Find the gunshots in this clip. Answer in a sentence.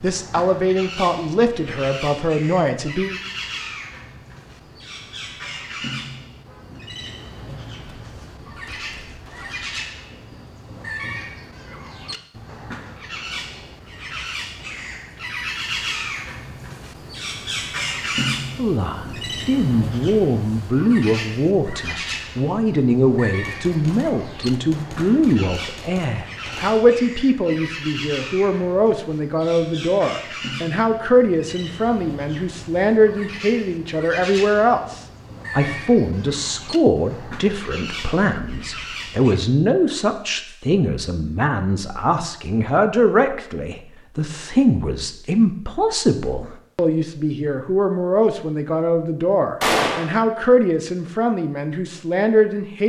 The gunshots can be heard from 7.8 to 9.8 s, from 23.4 to 26.8 s and from 49.6 to 50.1 s.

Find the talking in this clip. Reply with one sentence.
You can hear the talking from 0.0 to 3.2 s and from 18.6 to 52.8 s.